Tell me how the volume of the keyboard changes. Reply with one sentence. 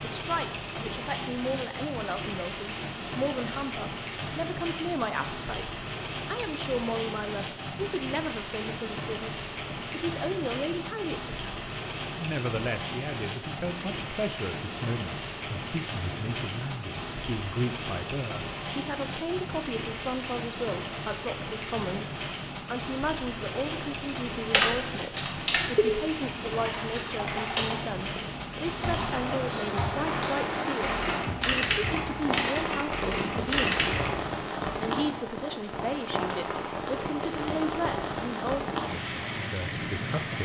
The volume of the keyboard stays about the same.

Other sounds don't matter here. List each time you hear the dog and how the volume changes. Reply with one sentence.
You can't hear the dog here.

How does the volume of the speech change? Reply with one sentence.
The loudness of the speech stays about the same.